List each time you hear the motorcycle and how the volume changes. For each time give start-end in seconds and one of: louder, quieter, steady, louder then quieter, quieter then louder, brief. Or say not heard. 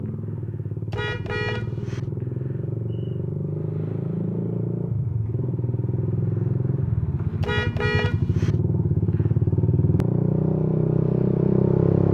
0.0-12.1 louder.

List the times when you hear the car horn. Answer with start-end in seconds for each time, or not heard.
0.9-2.1, 7.4-8.6.